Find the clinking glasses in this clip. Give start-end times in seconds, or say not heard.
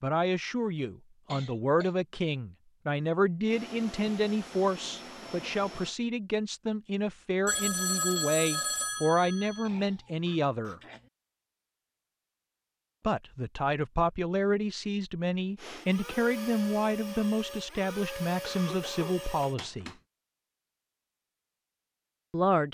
not heard.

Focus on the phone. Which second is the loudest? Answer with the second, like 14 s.
8 s.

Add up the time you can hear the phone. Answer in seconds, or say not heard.
2 s.